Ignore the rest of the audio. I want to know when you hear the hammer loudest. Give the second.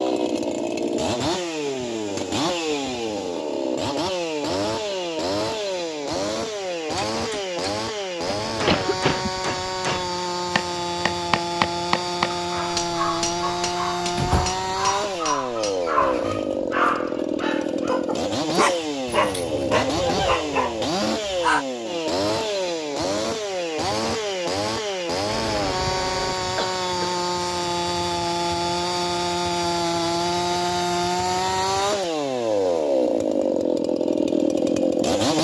12 s.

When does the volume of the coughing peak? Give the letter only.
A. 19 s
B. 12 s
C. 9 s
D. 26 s
C.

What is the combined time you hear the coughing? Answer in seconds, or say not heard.
3 s.